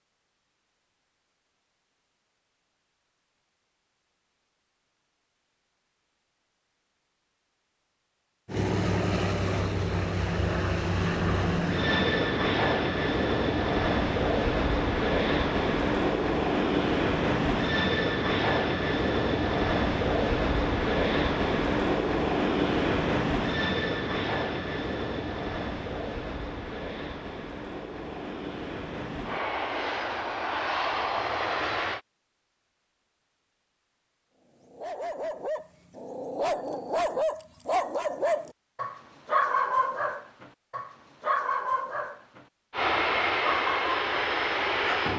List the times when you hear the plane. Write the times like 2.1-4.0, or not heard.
8.4-32.0, 42.7-45.1.